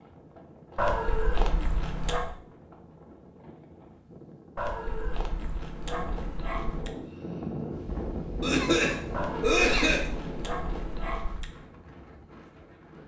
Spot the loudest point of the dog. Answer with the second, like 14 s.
1 s.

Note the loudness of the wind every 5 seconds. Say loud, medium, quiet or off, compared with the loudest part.
quiet, loud, medium.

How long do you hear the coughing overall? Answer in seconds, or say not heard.
2 s.